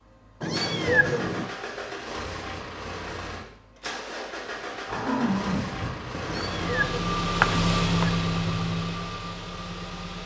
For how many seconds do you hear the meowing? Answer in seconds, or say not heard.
3 s.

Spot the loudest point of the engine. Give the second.
8 s.